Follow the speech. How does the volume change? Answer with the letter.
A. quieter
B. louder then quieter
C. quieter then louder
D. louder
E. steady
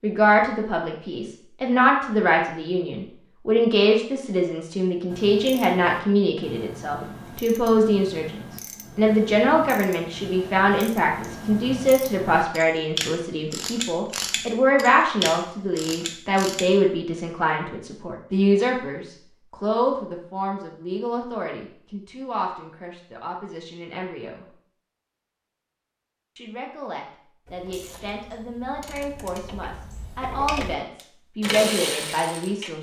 A.